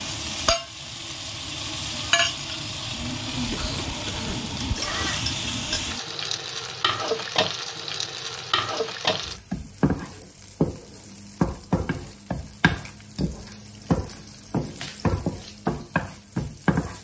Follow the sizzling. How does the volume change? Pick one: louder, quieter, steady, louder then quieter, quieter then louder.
steady.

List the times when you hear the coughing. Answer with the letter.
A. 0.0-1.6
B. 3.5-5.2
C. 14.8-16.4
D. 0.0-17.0
B.